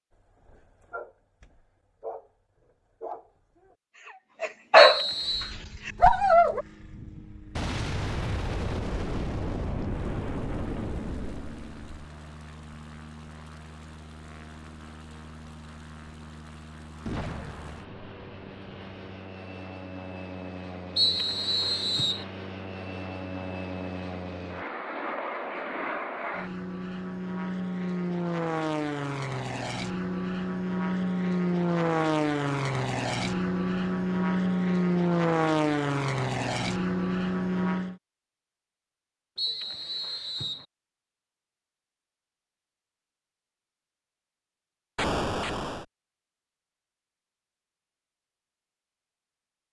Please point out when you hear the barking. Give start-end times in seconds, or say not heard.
0.4-2.3, 3.0-6.7.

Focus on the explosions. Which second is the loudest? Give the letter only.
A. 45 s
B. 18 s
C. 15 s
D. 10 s
A.